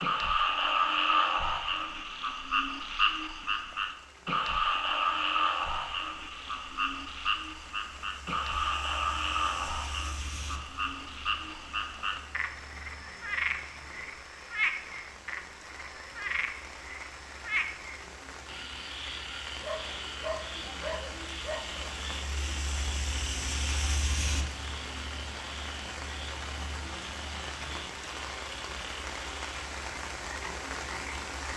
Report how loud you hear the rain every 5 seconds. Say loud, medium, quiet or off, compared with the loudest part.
quiet, medium, medium, medium, loud, loud, loud.